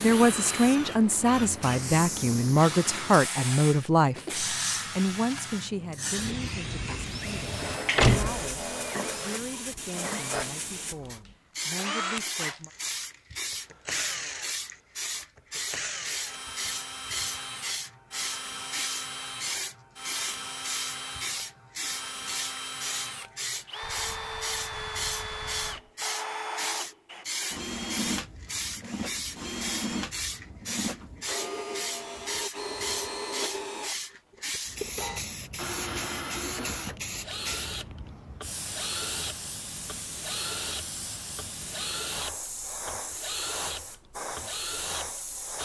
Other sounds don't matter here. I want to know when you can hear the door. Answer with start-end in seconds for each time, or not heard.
8.0-8.6.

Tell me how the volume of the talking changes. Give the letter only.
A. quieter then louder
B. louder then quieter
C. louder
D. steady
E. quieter
E.